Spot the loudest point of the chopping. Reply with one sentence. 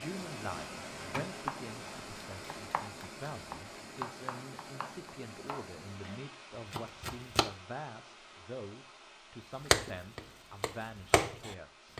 The volume of the chopping peaks at 10 seconds.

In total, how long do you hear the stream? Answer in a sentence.
You can hear the stream for 12 seconds altogether.